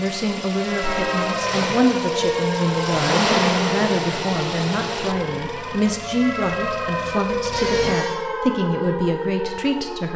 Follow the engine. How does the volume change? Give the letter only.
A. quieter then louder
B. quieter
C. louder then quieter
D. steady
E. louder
C.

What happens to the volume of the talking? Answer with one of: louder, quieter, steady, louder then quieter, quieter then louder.
steady.